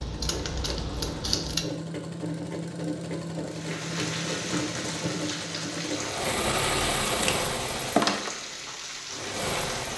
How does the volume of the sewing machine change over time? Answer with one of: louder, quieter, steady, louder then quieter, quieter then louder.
louder then quieter.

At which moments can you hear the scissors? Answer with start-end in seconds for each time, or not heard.
0.0-1.6, 7.0-8.3.